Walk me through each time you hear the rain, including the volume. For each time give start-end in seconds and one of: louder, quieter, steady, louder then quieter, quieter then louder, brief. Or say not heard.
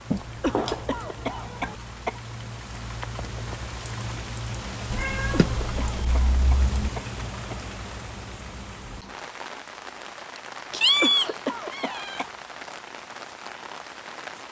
0.0-14.4 louder then quieter.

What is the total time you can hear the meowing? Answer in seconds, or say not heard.
5 s.